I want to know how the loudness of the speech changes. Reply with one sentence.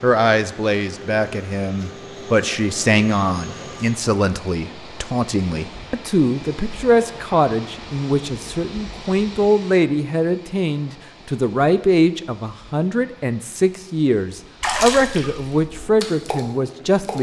The volume of the speech stays about the same.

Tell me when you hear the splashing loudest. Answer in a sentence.
The volume of the splashing peaks at 15 seconds.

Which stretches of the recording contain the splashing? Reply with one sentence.
You can hear the splashing from 14.6 to 17.1 s.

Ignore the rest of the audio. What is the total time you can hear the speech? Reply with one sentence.
You can hear the speech for 17 seconds altogether.